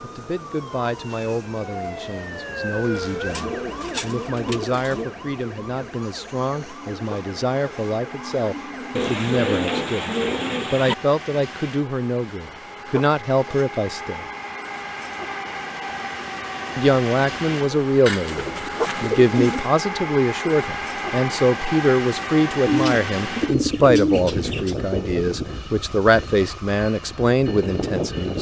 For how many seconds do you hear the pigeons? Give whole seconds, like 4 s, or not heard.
8 s.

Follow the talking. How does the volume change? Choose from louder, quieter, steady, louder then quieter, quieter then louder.
louder.